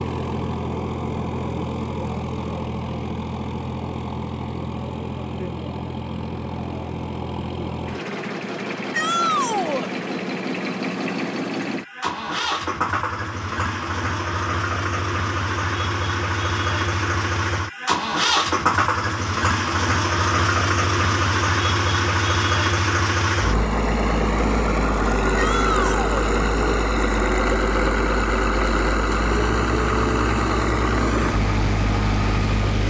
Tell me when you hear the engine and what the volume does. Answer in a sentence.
The engine can be heard from 0.0 to 32.8 s, getting louder.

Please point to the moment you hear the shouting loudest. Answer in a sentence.
The volume of the shouting peaks at 9 seconds.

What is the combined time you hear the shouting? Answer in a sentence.
The shouting can be heard for 2 seconds in total.